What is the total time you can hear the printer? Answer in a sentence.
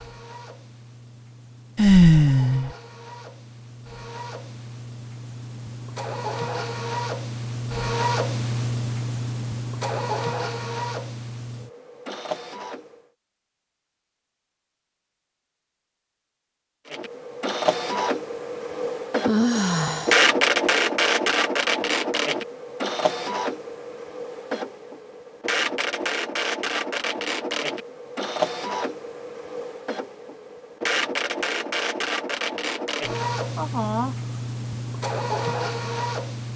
The printer can be heard for 33 seconds in total.